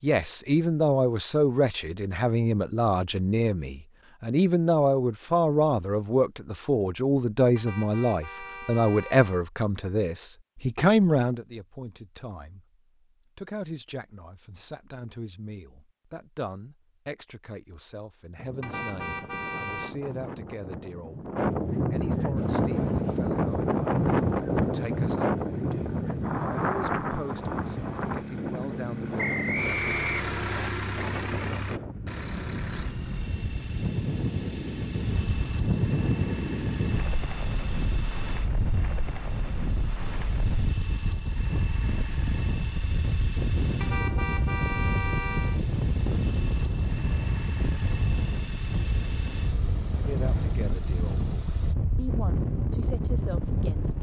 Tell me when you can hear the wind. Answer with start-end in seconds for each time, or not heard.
18.4-53.9.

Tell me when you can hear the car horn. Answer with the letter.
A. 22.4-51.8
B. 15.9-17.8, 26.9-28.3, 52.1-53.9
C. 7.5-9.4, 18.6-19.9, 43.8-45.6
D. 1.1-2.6
C.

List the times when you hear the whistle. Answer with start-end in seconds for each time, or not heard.
29.1-30.7.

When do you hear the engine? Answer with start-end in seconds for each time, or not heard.
22.4-51.8.